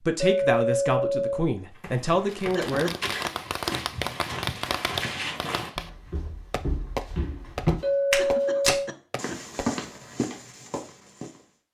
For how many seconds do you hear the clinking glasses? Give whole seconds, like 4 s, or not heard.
2 s.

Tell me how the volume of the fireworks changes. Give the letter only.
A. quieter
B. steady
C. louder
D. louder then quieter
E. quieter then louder
A.